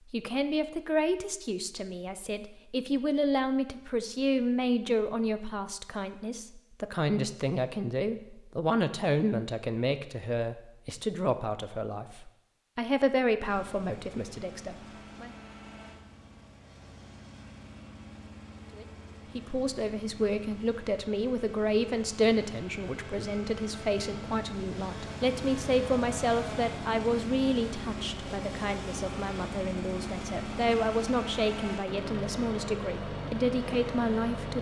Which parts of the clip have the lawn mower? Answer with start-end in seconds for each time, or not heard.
13.4-34.5.